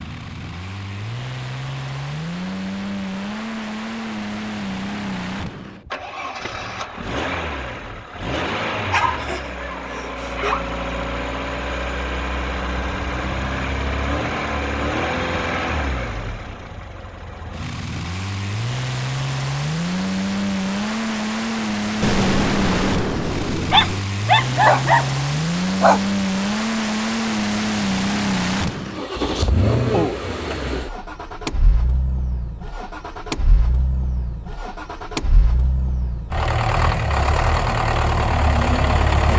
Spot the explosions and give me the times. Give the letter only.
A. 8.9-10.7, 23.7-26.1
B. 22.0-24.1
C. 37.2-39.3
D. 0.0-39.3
B.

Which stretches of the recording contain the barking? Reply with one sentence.
The barking can be heard from 8.9 to 10.7 s and from 23.7 to 26.1 s.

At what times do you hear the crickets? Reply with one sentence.
You can't hear the crickets here.